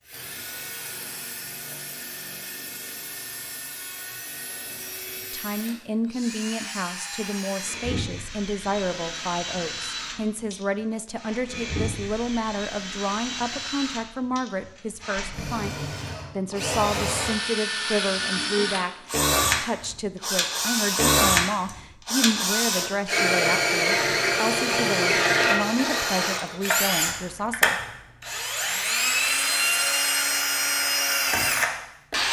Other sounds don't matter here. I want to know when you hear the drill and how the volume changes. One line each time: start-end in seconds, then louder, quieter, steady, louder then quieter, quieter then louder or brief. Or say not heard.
0.1-32.2 louder.